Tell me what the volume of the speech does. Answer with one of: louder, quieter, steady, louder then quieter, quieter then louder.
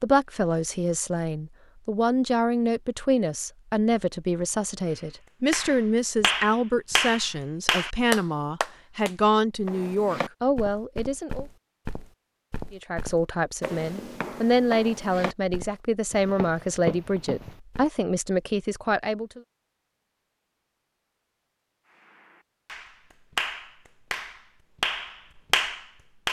steady.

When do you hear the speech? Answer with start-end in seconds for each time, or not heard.
0.0-11.4, 12.7-19.4.